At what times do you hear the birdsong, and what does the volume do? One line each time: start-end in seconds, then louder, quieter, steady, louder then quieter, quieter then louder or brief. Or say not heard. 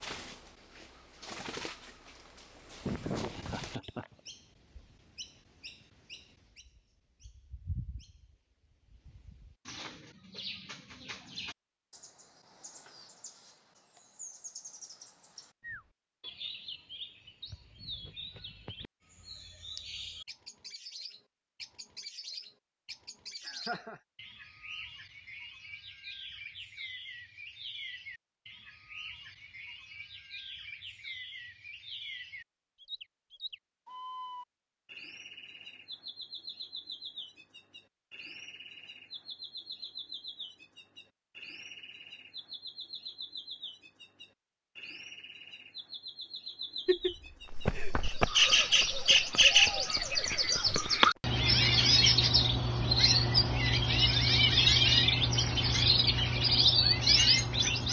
0.0-57.8 louder.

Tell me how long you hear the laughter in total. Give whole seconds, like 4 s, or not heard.
3 s.